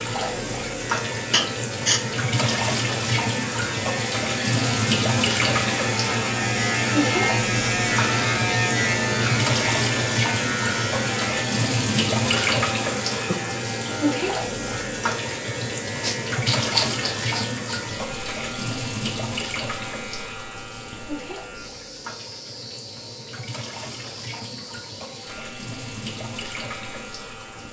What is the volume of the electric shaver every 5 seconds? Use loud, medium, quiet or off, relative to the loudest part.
medium, loud, medium, quiet, quiet, quiet.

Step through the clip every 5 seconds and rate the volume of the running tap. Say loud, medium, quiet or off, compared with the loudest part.
loud, loud, loud, loud, quiet, medium.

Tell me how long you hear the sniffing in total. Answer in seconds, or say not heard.
3 s.